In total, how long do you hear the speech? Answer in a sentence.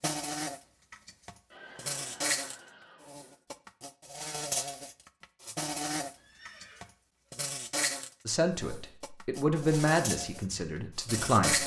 You can hear the speech for 3 seconds altogether.